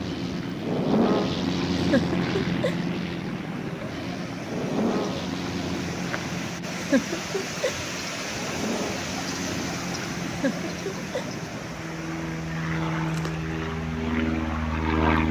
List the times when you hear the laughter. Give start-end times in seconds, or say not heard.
1.8-2.8, 6.8-7.8, 10.2-11.2.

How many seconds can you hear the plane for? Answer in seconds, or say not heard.
15 s.